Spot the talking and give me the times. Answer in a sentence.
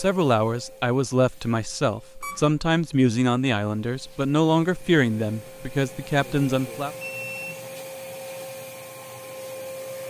You can hear the talking from 0.0 to 6.9 s.